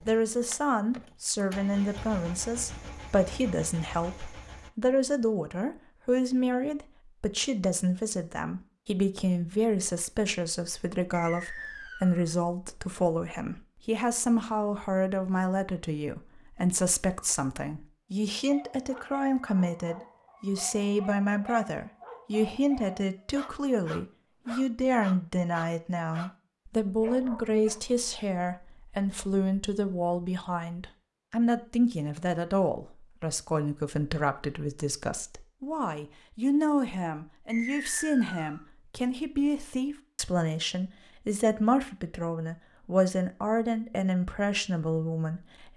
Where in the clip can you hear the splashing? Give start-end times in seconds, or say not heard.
not heard.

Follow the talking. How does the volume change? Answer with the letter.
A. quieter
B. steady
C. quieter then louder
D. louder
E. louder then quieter
B.